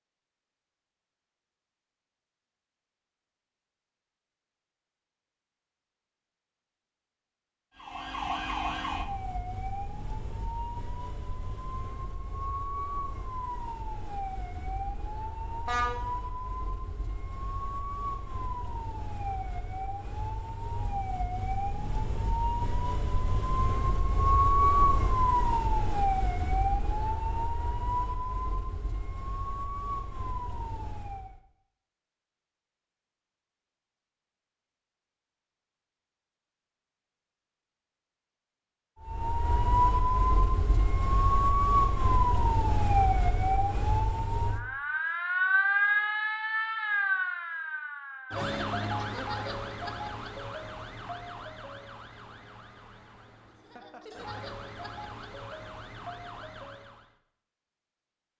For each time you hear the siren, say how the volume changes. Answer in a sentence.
You can hear the siren from 7.8 to 31.4 s, getting louder then quieter; and from 39.0 to 57.1 s, getting quieter.